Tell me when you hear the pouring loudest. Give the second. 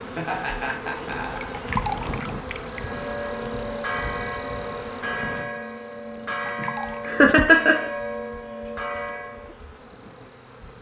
2 s.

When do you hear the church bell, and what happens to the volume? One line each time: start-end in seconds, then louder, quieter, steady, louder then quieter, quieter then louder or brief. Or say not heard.
2.7-9.6 steady.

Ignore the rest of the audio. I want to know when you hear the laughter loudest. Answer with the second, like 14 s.
7 s.